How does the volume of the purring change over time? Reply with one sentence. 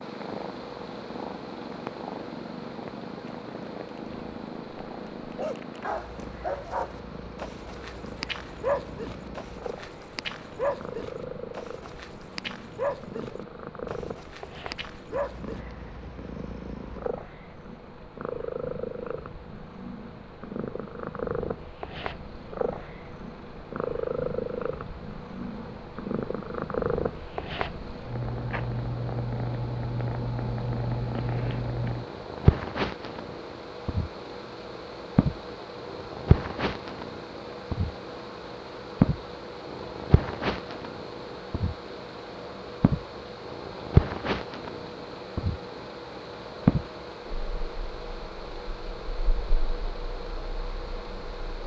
The volume of the purring goes up.